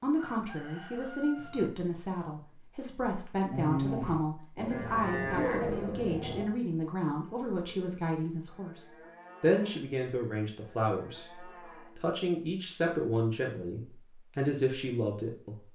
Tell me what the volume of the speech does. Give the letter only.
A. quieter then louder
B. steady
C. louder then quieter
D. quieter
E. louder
B.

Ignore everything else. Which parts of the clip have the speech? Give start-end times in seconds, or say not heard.
0.0-15.7.